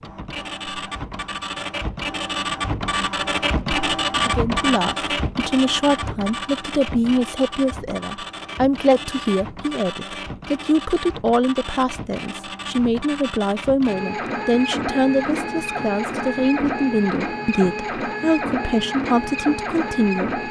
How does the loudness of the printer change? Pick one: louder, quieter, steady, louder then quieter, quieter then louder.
quieter then louder.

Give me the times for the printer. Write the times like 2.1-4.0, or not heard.
0.0-20.4.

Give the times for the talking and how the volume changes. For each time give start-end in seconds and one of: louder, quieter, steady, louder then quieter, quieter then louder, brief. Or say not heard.
4.2-20.4 steady.